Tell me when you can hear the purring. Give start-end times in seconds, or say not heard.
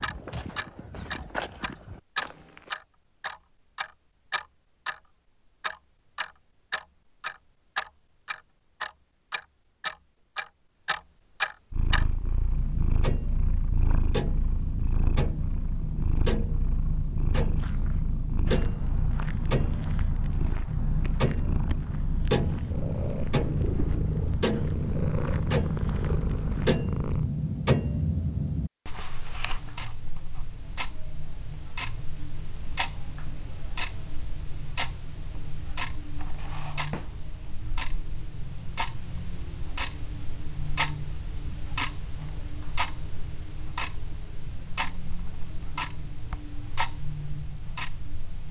11.7-27.3.